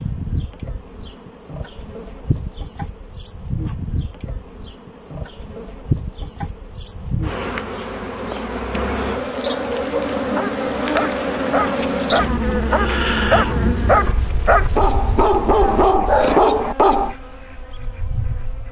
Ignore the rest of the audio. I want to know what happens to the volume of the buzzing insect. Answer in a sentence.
The volume of the buzzing insect goes up, then down.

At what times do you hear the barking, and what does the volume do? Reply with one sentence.
You can hear the barking from 9.3 to 17.1 s, getting louder.